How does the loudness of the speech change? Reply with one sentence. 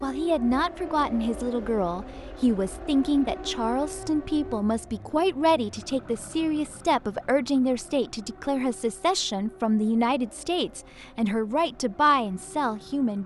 The loudness of the speech stays about the same.